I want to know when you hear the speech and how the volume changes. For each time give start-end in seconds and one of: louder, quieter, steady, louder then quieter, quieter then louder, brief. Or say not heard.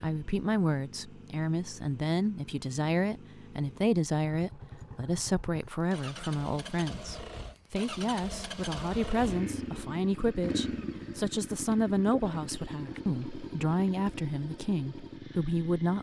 0.0-15.9 steady.